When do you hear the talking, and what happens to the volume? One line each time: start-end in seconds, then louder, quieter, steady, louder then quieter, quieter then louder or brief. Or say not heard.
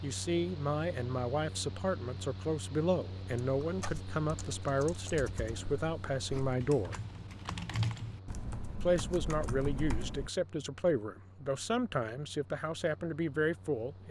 0.0-7.0 steady
8.8-14.0 steady.